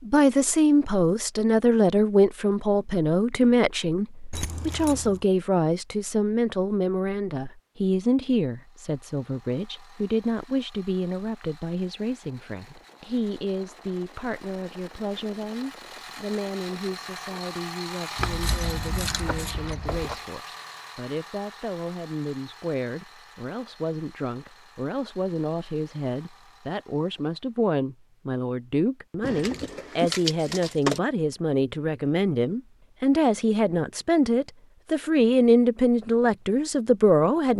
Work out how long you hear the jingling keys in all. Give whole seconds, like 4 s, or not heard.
5 s.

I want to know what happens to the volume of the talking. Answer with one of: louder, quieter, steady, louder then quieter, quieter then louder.
quieter then louder.